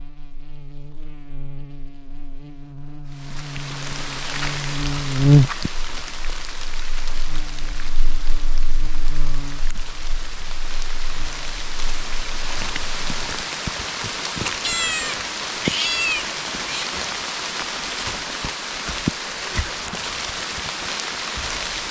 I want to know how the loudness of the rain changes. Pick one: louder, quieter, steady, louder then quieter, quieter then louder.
quieter then louder.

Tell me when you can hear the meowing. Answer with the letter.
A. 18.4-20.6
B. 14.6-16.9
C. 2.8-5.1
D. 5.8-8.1
B.